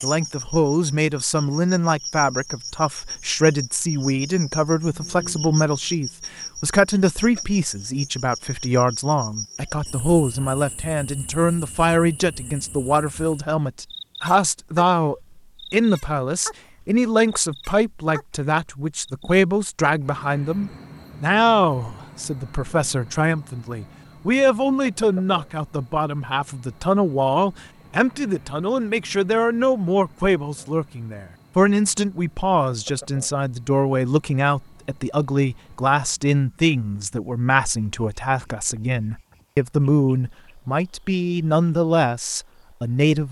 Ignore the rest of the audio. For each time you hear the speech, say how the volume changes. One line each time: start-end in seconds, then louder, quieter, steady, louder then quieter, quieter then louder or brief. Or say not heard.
0.0-43.2 steady.